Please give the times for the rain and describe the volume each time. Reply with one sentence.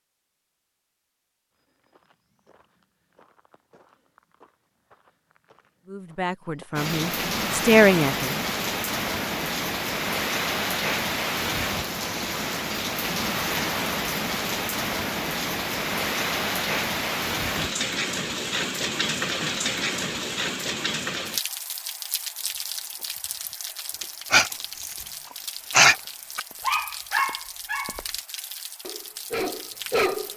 The rain can be heard from 6.8 to 30.3 s, getting quieter.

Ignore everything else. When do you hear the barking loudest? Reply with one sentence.
The volume of the barking peaks at 26 seconds.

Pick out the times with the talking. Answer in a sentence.
You can hear the talking from 5.8 to 8.3 s.